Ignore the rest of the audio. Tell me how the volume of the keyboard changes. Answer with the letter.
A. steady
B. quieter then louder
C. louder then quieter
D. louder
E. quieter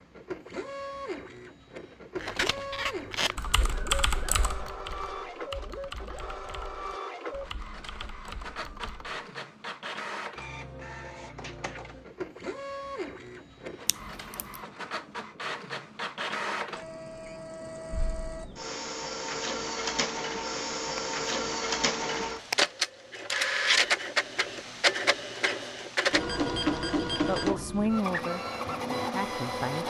E.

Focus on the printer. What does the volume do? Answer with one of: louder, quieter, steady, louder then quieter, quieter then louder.
louder.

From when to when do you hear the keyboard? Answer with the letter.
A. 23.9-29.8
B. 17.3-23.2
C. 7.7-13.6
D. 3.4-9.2
D.